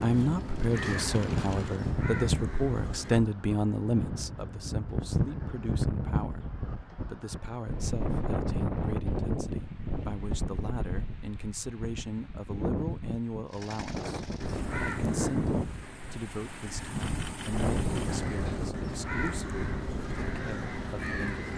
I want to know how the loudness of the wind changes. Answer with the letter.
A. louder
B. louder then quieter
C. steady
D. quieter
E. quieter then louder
C.